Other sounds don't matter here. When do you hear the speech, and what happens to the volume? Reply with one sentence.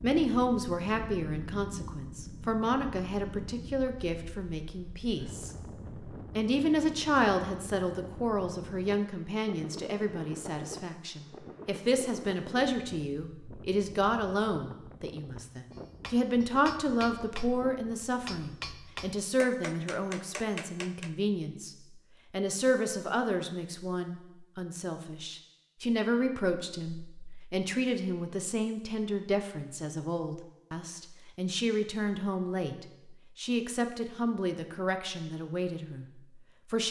You can hear the speech from 0.0 to 36.8 s, at a steady volume.